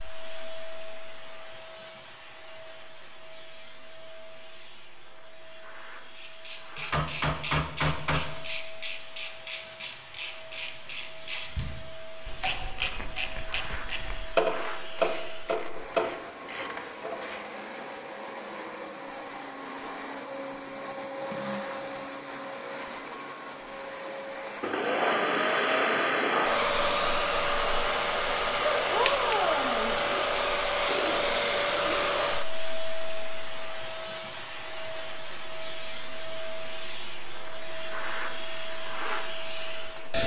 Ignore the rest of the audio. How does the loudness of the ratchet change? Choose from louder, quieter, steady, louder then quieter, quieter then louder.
steady.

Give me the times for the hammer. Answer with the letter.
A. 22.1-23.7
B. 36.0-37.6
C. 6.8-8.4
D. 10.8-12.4
C.